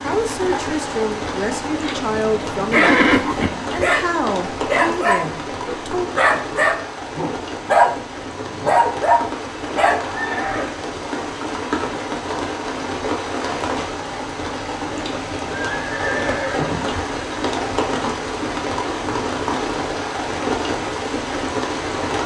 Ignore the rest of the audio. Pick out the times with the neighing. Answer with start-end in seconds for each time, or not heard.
2.7-3.5, 10.1-10.7, 15.5-17.1.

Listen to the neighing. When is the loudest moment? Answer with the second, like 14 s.
3 s.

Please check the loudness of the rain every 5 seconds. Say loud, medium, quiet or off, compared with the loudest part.
loud, medium, loud, loud, loud.